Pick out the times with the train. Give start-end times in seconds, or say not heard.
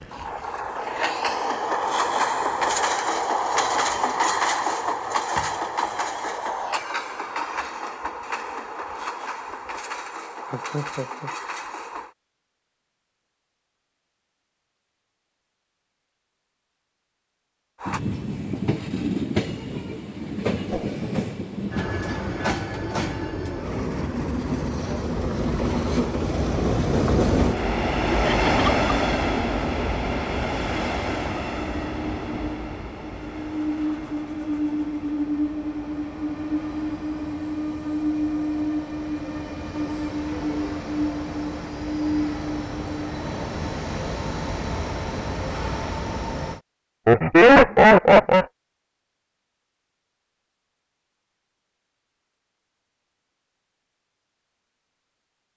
0.0-12.2, 17.8-46.6.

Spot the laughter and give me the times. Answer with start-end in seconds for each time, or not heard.
10.5-11.3, 28.1-28.7, 47.0-48.5.